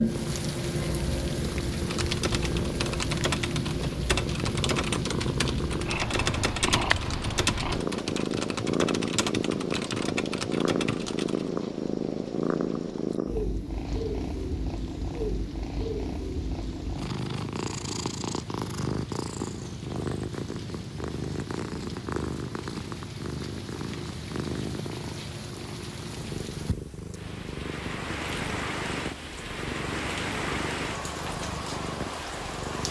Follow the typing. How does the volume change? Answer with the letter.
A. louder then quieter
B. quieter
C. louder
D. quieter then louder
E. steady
E.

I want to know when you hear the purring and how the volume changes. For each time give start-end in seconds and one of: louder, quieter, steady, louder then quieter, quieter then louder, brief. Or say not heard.
0.0-32.8 quieter.